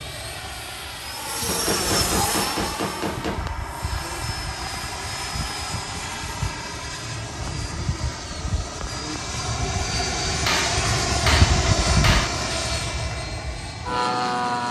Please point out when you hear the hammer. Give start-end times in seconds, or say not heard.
1.4-3.5, 10.4-12.3.